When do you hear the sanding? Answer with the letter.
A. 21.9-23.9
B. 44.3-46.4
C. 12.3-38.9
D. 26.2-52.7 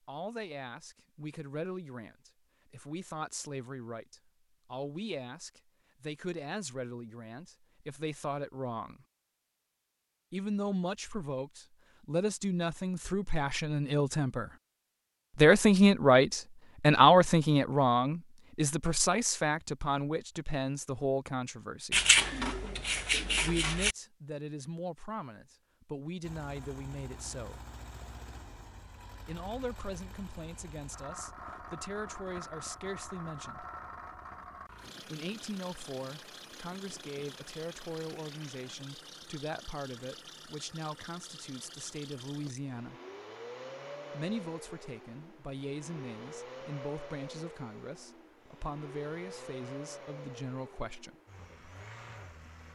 A.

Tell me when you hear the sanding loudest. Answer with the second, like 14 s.
22 s.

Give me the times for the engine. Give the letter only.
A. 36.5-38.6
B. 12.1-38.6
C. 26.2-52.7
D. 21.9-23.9
C.